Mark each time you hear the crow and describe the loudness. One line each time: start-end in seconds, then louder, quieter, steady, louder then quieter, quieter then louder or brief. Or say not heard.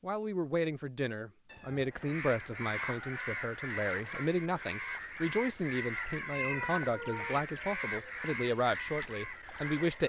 1.9-10.0 steady.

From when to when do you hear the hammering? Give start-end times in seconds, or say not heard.
not heard.